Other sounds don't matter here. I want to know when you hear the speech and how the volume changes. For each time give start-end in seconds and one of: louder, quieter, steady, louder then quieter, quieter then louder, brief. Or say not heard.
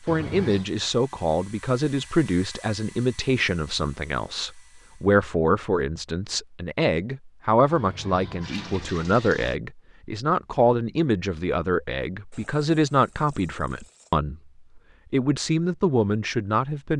0.1-16.9 steady.